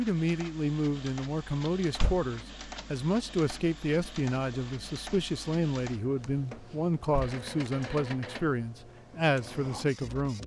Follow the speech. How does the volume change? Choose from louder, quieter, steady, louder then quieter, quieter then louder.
steady.